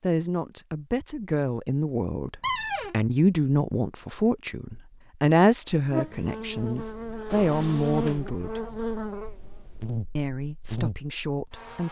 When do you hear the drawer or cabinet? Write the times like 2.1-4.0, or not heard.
2.4-3.0, 7.3-8.3.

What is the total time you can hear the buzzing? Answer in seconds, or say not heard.
6 s.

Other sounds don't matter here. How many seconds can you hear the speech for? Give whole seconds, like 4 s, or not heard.
10 s.